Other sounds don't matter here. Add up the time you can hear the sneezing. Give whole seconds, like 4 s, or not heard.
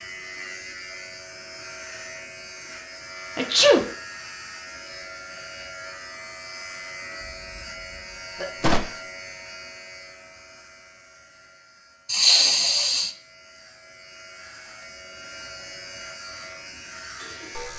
3 s.